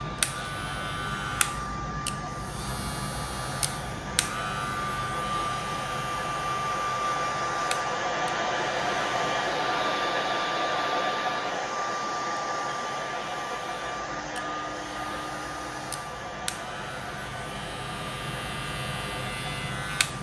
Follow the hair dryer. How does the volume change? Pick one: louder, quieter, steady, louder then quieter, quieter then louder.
louder then quieter.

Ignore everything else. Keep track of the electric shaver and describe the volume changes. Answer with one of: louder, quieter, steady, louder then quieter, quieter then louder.
quieter then louder.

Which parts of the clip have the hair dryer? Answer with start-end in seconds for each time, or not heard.
0.0-20.1.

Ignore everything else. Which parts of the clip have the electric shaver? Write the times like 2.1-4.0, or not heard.
0.0-20.1.